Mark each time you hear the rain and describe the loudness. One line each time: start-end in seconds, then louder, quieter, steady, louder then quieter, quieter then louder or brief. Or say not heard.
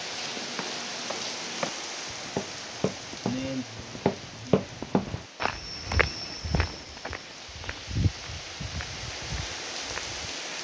0.0-10.5 quieter then louder.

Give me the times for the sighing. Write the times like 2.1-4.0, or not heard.
3.2-4.6.